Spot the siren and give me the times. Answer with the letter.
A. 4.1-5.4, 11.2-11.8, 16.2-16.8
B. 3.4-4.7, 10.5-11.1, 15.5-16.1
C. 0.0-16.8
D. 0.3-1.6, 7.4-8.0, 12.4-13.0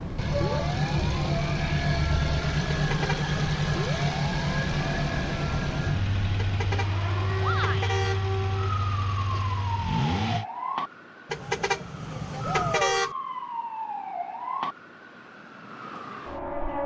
C.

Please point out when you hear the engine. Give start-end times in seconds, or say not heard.
0.0-10.4.